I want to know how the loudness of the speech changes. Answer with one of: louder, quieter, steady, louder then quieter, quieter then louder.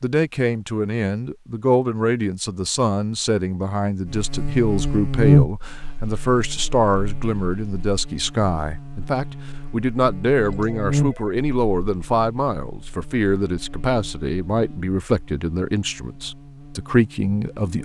steady.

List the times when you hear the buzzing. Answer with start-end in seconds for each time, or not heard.
4.0-17.8.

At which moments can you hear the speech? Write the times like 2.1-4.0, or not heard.
0.0-17.8.